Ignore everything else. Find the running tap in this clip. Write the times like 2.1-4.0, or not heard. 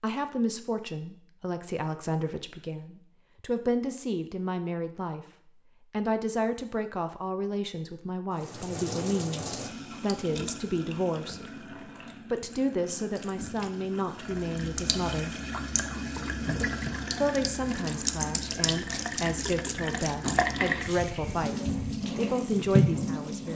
8.3-23.5.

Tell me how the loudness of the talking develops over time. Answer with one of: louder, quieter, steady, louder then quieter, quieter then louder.
steady.